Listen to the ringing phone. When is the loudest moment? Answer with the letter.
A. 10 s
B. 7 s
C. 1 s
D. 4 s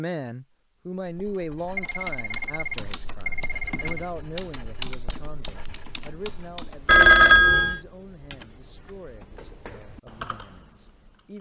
B.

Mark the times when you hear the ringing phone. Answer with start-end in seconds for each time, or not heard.
1.8-4.0, 6.8-7.8.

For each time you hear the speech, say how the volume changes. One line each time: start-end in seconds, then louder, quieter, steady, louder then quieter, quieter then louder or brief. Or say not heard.
0.0-11.3 quieter.